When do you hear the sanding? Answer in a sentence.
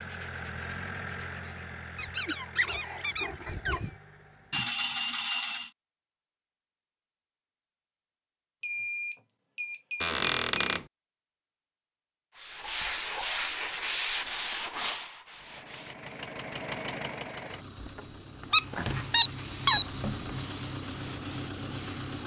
You can hear the sanding from 0.0 to 1.6 s, from 12.3 to 16.1 s and from 18.4 to 22.2 s.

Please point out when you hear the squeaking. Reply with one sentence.
The squeaking can be heard from 1.9 to 4.0 s, from 10.0 to 10.8 s and from 17.8 to 20.4 s.